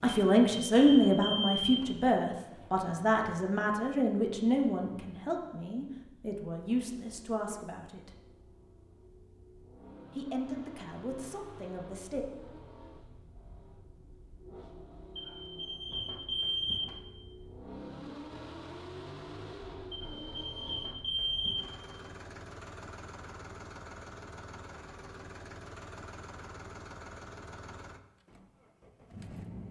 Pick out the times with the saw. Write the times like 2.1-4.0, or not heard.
not heard.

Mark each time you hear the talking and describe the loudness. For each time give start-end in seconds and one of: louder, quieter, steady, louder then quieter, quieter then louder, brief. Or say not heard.
0.0-8.1 quieter
10.2-12.2 brief.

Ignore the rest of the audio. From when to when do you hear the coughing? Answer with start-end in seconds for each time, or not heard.
not heard.